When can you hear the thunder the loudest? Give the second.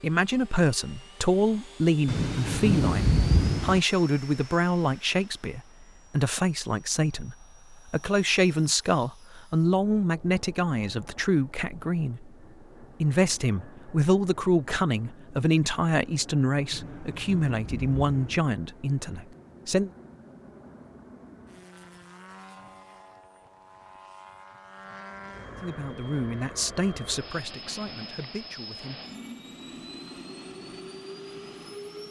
3 s.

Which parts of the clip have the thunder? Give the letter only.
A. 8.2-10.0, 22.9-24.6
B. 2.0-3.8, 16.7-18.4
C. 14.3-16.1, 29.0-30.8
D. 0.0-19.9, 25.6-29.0
B.